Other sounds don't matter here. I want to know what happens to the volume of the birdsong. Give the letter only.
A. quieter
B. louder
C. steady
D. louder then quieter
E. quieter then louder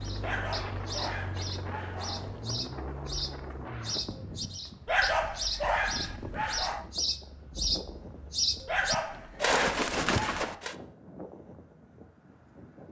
B.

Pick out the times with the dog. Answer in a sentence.
The dog can be heard from 0.2 to 2.4 s, from 4.8 to 6.8 s and from 8.7 to 10.6 s.